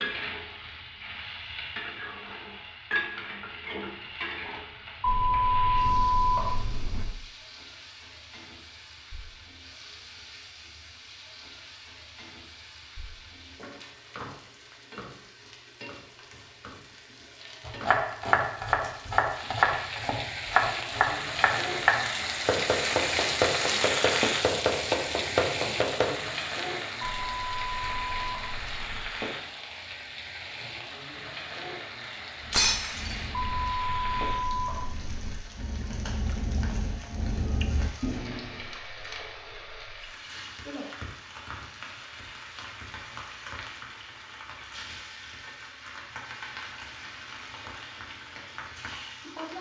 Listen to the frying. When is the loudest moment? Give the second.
24 s.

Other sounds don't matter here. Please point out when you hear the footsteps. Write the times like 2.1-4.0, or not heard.
not heard.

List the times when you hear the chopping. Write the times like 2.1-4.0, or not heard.
17.6-26.1.